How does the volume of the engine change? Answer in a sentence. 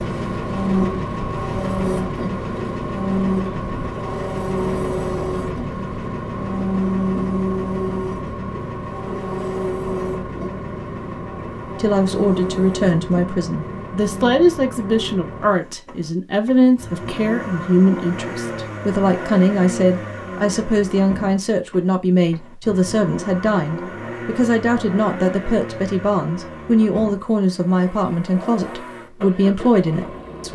The volume of the engine goes down.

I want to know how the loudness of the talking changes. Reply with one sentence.
The volume of the talking stays about the same.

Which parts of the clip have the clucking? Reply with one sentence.
The clucking can't be heard in this clip.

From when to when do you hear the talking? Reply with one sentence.
The talking can be heard from 11.8 to 30.5 s.